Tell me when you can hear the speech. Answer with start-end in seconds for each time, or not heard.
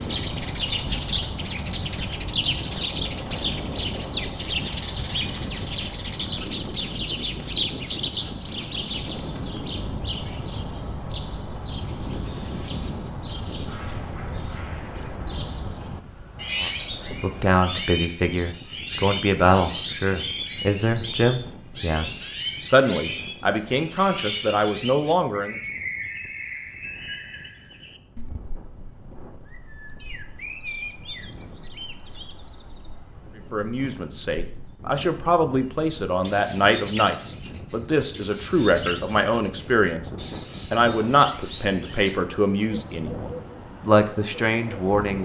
16.6-25.6, 33.5-45.2.